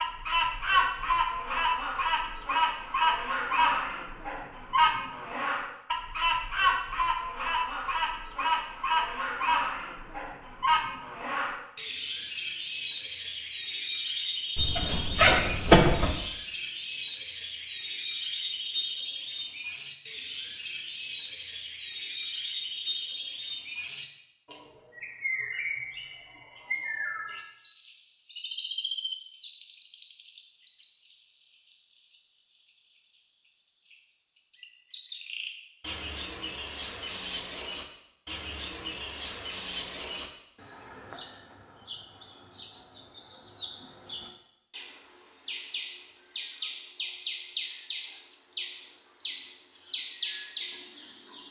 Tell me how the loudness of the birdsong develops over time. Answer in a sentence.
The loudness of the birdsong goes down.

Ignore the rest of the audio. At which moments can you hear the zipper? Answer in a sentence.
You can hear the zipper from 14.6 to 16.1 s.